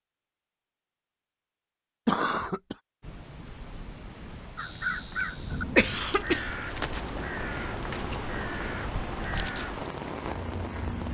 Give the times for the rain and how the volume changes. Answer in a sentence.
The rain can be heard from 3.0 to 11.0 s, getting louder.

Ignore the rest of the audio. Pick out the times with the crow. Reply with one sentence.
The crow can be heard from 4.5 to 11.0 s.